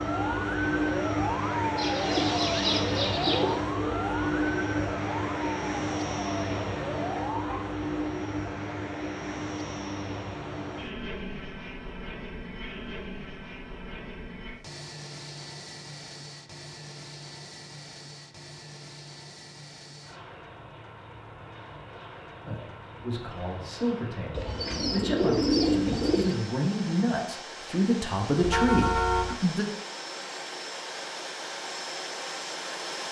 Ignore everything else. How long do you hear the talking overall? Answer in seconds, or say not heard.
7 s.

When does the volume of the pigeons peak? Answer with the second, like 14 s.
26 s.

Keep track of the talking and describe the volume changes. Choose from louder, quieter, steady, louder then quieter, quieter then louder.
louder.